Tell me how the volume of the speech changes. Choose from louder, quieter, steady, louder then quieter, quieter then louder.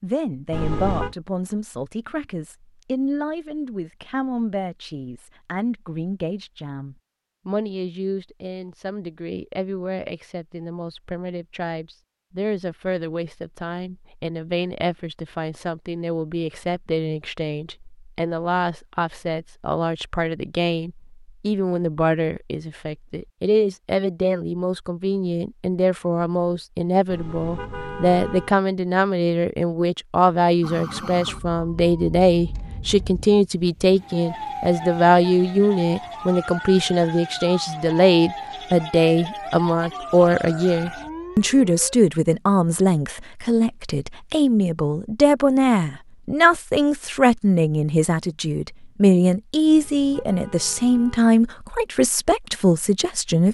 louder.